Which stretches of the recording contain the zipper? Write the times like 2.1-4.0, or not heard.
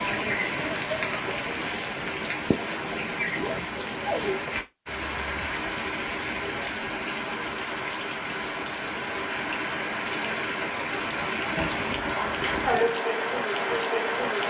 3.3-4.3, 11.6-12.8.